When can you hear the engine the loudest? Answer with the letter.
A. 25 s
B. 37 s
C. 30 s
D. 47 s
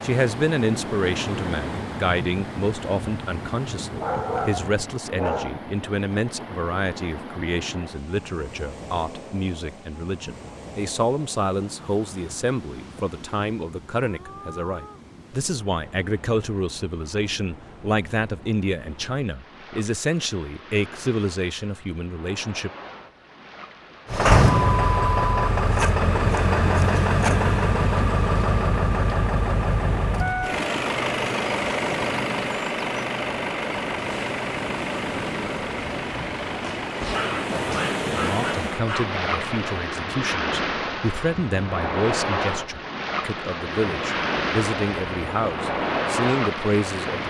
A.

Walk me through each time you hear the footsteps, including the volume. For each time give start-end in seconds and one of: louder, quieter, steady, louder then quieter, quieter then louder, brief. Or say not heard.
not heard.